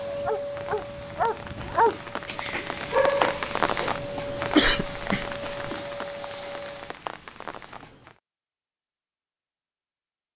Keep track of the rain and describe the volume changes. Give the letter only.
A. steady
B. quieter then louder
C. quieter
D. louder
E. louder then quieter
E.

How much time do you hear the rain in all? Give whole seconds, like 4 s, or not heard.
8 s.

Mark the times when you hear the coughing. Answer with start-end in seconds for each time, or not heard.
4.3-5.7.